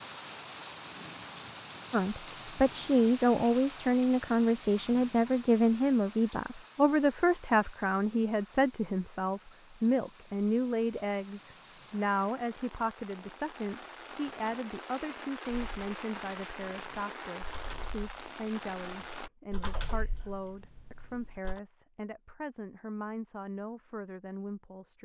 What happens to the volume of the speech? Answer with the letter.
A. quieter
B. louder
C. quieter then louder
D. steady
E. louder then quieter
A.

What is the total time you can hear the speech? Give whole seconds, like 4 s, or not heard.
23 s.